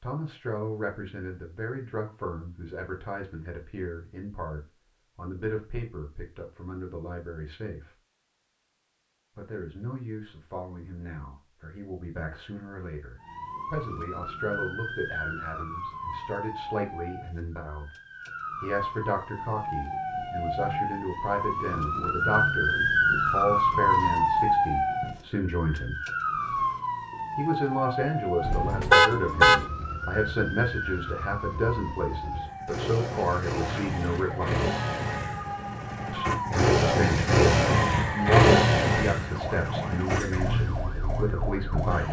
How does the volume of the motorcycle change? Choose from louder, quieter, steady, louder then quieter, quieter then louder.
louder then quieter.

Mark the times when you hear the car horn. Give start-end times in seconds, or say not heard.
28.4-29.6.